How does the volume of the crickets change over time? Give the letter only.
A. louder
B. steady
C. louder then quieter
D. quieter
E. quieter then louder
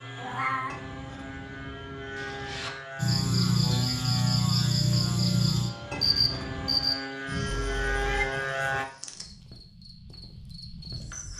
D.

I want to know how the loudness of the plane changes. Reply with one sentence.
The loudness of the plane goes up.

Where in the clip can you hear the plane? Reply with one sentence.
You can hear the plane from 0.0 to 8.8 s.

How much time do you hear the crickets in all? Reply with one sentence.
You can hear the crickets for 8 seconds altogether.